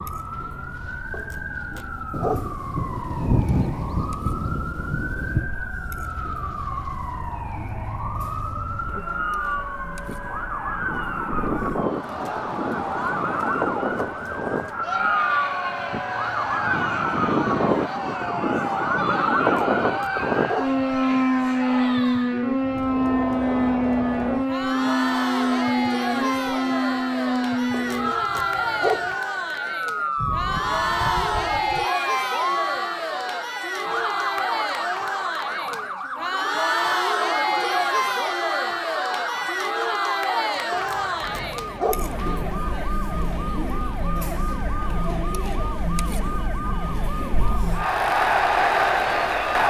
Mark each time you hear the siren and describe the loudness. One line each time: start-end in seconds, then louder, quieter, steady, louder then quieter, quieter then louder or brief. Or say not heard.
0.0-49.6 louder then quieter.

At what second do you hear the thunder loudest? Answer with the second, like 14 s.
3 s.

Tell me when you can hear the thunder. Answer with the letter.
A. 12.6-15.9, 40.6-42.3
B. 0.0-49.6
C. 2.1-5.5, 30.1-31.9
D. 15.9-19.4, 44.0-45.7
C.